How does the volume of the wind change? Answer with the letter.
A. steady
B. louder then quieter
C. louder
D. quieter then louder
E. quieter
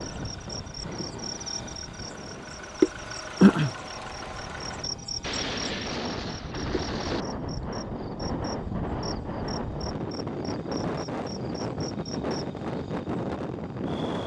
C.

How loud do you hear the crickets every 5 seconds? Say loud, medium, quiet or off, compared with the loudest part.
loud, quiet, quiet.